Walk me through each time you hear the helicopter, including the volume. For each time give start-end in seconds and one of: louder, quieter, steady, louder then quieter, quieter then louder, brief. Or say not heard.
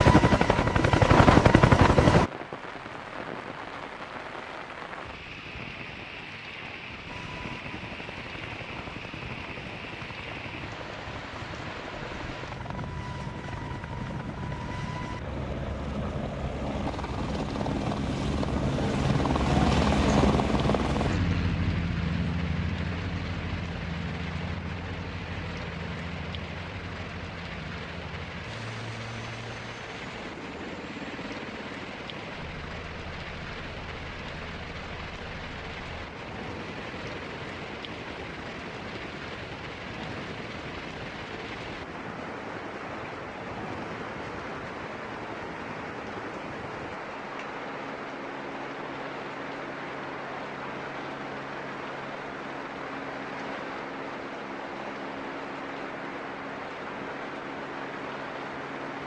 0.0-2.3 brief
7.0-59.0 louder then quieter.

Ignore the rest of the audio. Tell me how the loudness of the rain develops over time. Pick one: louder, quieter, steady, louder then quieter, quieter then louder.
steady.